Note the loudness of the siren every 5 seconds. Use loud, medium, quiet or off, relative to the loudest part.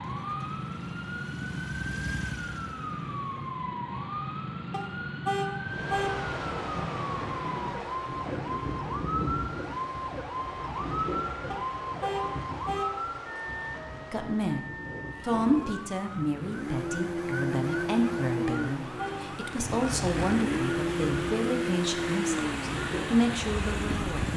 loud, loud, loud, medium, loud.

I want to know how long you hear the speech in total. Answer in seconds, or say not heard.
10 s.